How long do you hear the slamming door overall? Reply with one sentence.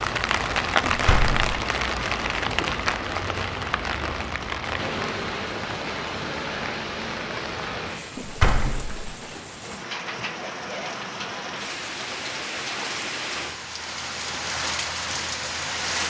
The slamming door can be heard for 2 seconds in total.